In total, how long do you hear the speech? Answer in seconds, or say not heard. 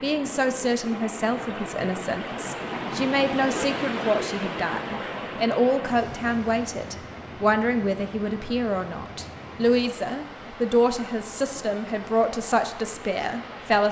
14 s.